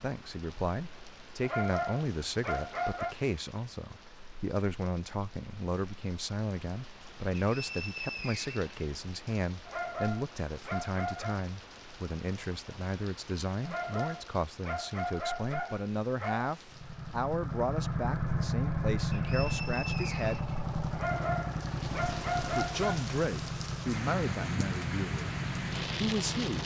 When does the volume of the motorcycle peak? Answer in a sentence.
The loudest moment of the motorcycle is at 19 seconds.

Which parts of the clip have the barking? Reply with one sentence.
You can hear the barking from 1.4 to 3.1 s, from 9.7 to 11.4 s, from 13.6 to 16.5 s and from 20.9 to 23.1 s.